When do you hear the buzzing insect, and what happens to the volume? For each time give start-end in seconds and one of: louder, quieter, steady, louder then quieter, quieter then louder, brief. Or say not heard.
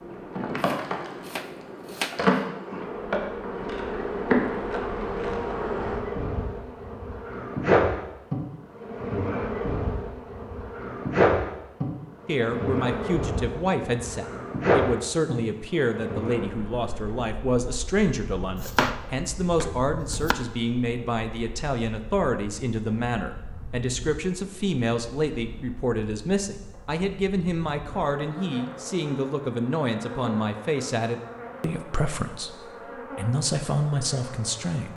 0.0-34.9 quieter then louder.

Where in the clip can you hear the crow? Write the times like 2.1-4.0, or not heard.
not heard.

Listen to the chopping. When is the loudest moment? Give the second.
19 s.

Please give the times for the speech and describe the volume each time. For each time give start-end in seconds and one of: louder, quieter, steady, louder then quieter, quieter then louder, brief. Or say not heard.
12.2-34.9 steady.